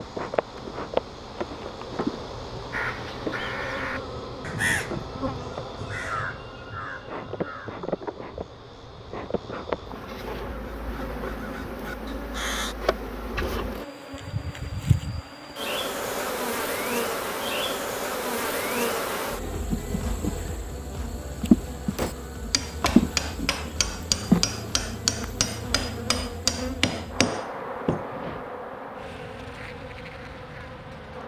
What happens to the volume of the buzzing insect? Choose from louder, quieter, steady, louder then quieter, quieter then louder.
louder then quieter.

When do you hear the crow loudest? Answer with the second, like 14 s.
5 s.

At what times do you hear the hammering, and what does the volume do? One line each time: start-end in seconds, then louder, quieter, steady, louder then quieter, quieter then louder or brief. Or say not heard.
21.9-28.1 steady.